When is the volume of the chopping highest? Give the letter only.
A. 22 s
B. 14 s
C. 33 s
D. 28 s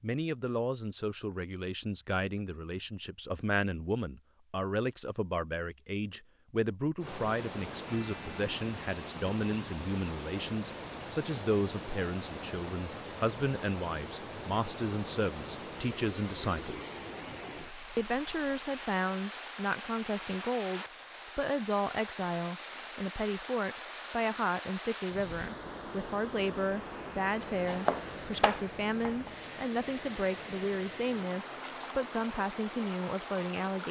D.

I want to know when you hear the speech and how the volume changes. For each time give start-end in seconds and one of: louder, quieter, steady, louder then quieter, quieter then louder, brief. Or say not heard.
0.0-16.9 steady
17.9-33.8 steady.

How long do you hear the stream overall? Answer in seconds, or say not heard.
27 s.